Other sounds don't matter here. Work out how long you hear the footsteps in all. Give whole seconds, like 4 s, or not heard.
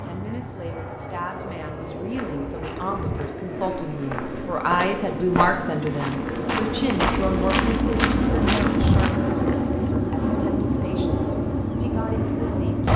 8 s.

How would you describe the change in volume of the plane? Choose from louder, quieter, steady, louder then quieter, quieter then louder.
louder.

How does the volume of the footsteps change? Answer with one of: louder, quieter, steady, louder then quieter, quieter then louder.
louder.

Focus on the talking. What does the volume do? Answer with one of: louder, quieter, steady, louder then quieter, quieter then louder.
louder then quieter.